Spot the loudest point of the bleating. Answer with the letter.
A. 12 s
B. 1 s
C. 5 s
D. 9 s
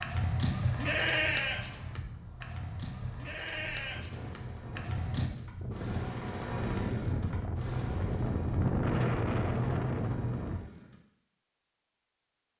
B.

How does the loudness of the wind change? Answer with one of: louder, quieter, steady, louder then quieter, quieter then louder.
louder.